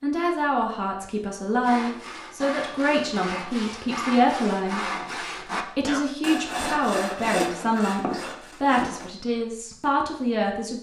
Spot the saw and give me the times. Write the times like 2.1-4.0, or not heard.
1.6-9.1.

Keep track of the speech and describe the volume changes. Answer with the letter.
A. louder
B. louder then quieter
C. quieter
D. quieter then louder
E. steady
E.